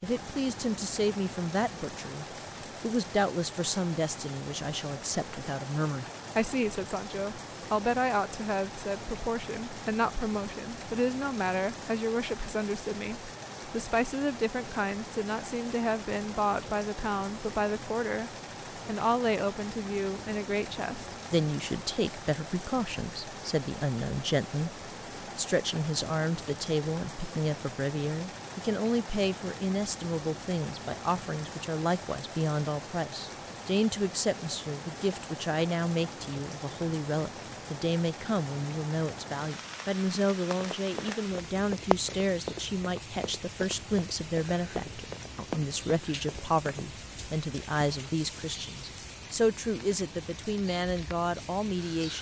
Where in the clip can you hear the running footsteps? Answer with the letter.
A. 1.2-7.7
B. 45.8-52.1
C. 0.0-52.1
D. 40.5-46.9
D.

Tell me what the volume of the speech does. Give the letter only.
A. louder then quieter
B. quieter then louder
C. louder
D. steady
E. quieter
D.